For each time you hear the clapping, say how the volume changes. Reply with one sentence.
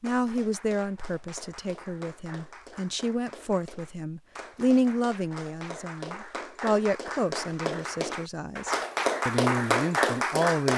You can hear the clapping from 0.0 to 10.7 s, getting louder.